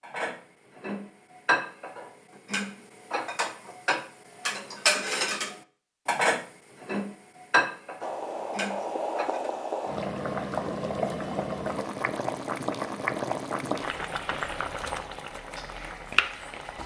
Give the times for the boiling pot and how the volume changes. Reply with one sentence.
The boiling pot can be heard from 8.0 to 16.8 s, at a steady volume.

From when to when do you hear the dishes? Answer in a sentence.
You can hear the dishes from 0.0 to 9.5 s.